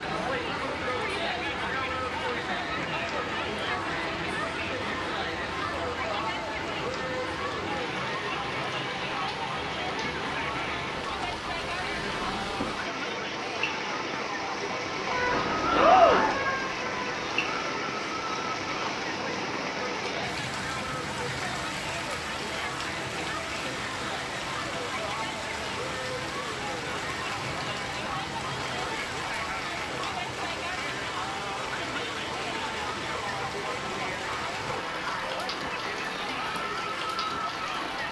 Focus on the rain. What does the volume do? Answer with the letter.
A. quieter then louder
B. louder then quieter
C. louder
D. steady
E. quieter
D.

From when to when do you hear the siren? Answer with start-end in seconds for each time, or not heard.
15.1-17.7.